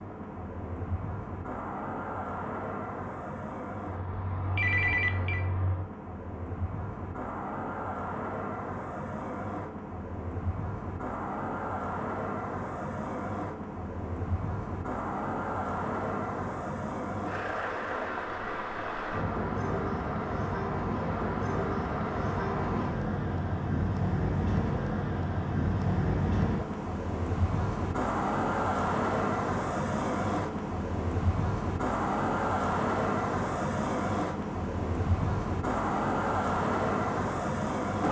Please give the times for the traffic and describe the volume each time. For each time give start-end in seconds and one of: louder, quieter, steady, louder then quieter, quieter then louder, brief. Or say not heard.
0.0-38.0 louder.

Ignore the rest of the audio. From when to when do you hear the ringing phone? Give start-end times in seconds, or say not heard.
4.5-5.5.